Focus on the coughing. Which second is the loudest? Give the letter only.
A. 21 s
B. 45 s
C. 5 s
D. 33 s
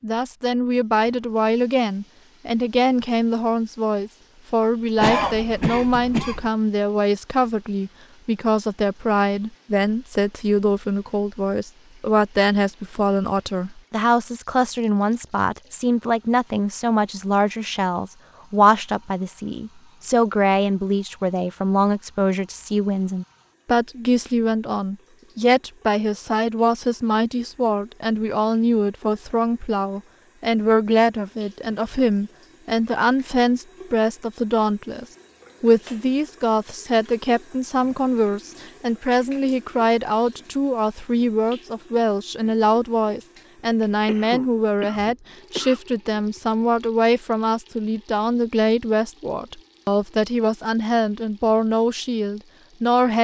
C.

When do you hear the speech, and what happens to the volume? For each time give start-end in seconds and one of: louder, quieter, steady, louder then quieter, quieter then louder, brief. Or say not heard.
0.0-53.1 steady.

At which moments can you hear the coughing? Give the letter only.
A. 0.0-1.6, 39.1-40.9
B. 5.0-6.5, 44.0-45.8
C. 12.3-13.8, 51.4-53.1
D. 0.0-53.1
B.